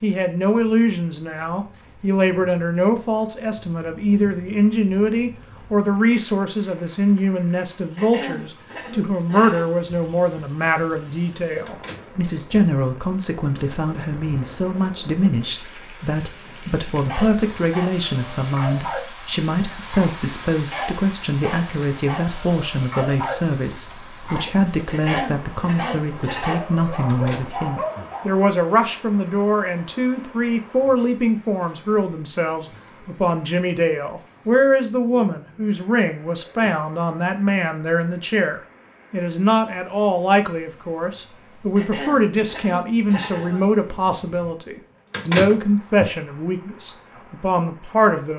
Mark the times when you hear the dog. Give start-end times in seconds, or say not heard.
16.9-28.4.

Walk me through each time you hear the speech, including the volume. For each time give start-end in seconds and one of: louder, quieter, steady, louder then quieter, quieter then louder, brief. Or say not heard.
0.0-48.3 steady.